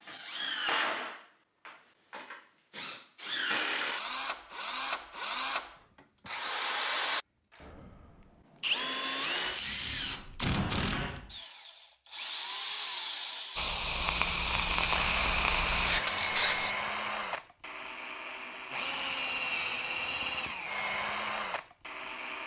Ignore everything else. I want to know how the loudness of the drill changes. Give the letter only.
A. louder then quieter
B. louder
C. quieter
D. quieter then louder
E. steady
E.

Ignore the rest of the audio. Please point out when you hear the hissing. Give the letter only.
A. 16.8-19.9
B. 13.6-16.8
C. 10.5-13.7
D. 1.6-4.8
B.